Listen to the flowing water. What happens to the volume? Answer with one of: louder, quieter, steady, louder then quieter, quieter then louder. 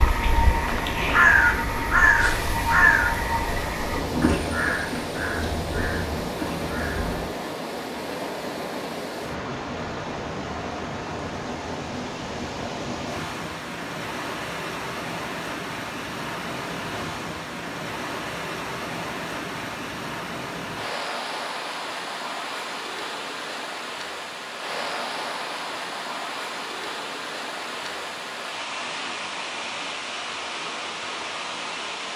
steady.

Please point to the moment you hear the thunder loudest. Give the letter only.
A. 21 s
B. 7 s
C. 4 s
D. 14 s
C.